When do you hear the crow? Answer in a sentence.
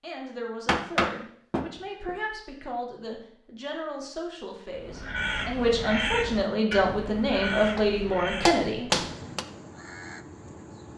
You can hear the crow from 4.7 to 10.9 s.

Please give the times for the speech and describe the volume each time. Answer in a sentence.
You can hear the speech from 0.0 to 8.9 s, getting louder.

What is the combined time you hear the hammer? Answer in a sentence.
The hammer can be heard for 3 seconds in total.